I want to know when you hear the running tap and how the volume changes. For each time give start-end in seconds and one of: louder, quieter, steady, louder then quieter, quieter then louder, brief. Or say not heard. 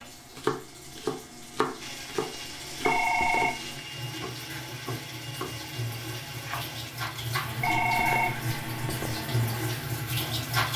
0.0-10.7 louder.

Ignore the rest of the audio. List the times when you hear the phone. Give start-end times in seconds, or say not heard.
2.8-3.5, 7.6-9.2.